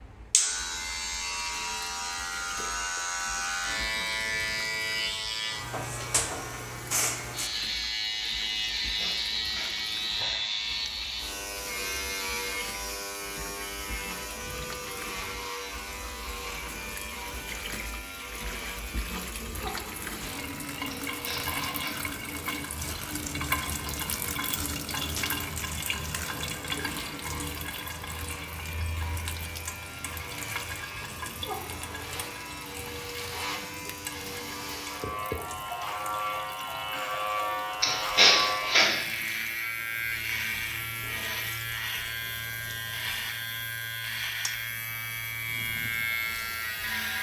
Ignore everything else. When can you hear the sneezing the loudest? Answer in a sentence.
The loudest moment of the sneezing is at 38 seconds.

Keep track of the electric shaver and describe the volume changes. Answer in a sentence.
The loudness of the electric shaver goes down, then up.